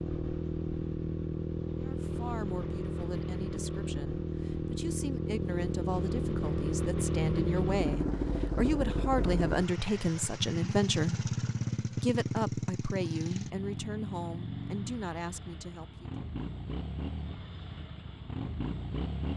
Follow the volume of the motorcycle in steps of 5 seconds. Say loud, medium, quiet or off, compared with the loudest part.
loud, loud, loud, medium.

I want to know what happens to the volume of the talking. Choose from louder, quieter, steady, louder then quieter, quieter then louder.
louder then quieter.